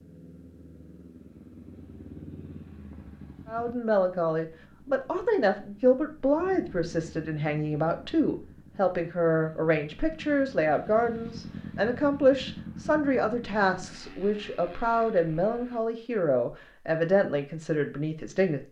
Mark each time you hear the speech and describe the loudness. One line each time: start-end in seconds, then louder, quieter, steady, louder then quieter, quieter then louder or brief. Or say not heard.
3.5-18.6 steady.